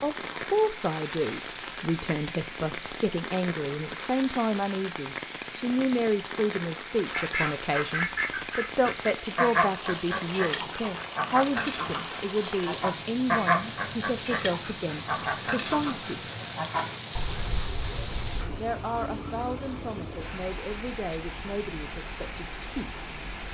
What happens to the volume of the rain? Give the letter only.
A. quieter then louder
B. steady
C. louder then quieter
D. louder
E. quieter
B.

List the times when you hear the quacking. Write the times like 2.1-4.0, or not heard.
7.0-18.6.